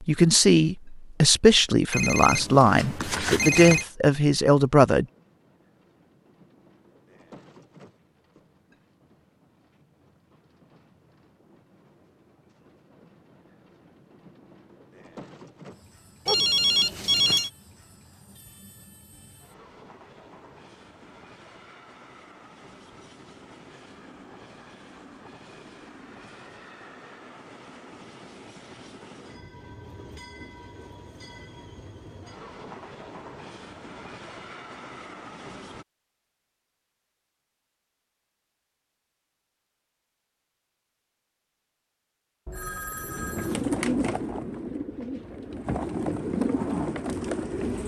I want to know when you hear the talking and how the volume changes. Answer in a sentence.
The talking can be heard from 0.0 to 5.0 s, at a steady volume.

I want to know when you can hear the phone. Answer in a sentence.
You can hear the phone from 1.9 to 3.9 s, from 16.2 to 17.5 s and from 42.5 to 43.6 s.